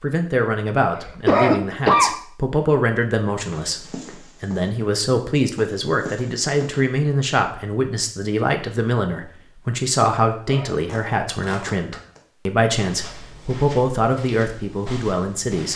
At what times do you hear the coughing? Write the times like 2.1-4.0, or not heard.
0.9-2.1, 10.3-10.9.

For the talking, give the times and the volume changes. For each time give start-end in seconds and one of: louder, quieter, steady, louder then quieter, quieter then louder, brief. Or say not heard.
0.0-15.7 steady.